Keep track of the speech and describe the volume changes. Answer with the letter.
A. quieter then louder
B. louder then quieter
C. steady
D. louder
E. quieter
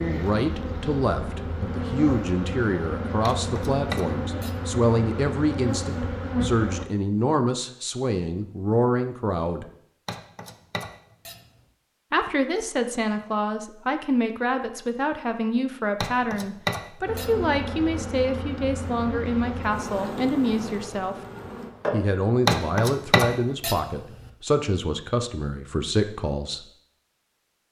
C.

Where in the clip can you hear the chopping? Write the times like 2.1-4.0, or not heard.
3.2-4.5, 10.1-11.4, 16.0-17.3, 22.4-23.8.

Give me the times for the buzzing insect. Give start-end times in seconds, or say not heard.
0.0-6.8, 17.1-22.1.